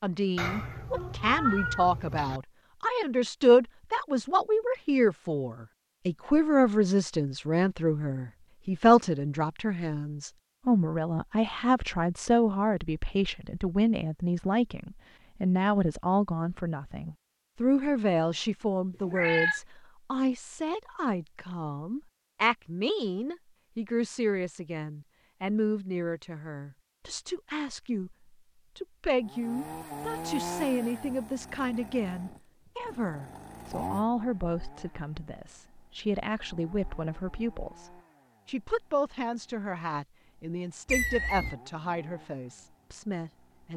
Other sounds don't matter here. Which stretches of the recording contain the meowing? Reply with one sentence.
The meowing can be heard from 0.3 to 2.4 s, from 19.1 to 19.6 s and from 40.9 to 41.5 s.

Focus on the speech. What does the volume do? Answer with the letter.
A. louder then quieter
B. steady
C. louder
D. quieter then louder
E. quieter
E.